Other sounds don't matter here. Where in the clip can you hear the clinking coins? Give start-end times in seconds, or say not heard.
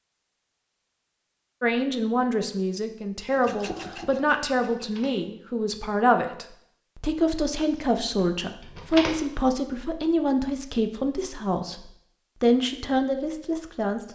4.8-5.2, 8.6-9.2.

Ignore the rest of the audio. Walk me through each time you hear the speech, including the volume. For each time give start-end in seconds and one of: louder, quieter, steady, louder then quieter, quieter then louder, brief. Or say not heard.
1.6-14.0 steady.